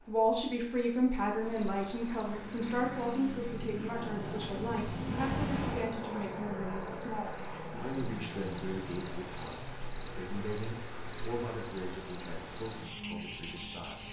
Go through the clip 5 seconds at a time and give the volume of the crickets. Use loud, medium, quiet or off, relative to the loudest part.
medium, loud, loud.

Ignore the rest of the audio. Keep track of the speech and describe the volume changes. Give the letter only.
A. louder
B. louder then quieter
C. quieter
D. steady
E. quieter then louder
C.